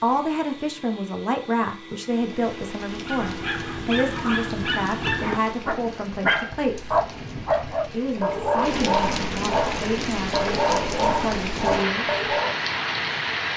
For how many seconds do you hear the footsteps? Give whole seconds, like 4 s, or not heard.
not heard.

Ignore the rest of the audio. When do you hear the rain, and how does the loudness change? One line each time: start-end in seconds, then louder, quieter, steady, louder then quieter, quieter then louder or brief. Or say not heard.
2.1-13.5 louder.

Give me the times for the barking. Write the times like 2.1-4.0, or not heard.
3.0-12.8.